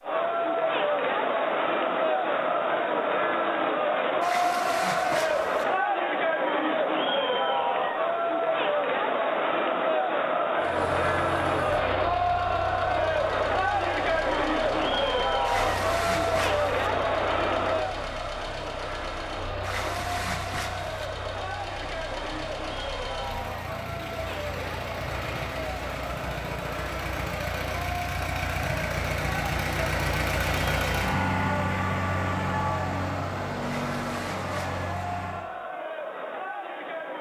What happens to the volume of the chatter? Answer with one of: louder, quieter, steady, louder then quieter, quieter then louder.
quieter.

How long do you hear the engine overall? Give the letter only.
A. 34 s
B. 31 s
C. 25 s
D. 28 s
C.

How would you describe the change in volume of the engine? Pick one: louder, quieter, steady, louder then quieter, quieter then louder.
louder.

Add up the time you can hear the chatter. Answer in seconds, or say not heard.
37 s.